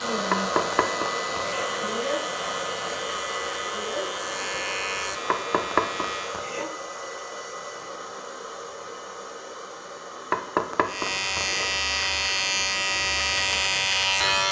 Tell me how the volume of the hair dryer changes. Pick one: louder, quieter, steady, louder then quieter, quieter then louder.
quieter.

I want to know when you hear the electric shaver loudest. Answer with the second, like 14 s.
14 s.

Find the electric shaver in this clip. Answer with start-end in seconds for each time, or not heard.
0.0-6.5, 10.8-14.4.